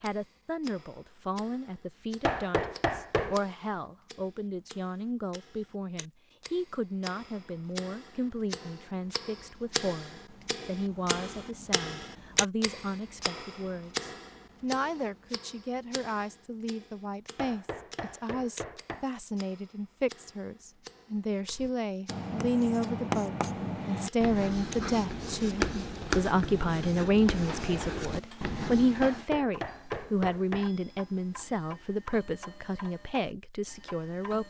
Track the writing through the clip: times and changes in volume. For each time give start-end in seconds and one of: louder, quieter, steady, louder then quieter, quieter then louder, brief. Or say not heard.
21.5-29.2 steady.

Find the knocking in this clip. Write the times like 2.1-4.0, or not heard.
2.2-3.4, 17.4-19.1, 29.0-30.7.